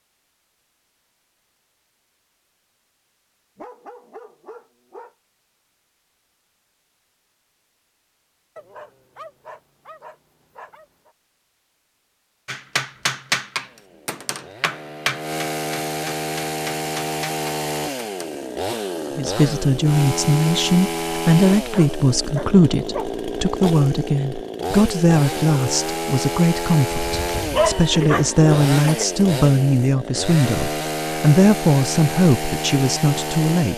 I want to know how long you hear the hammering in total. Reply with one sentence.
The hammering can be heard for 6 seconds in total.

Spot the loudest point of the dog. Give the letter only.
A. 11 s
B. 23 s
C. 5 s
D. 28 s
D.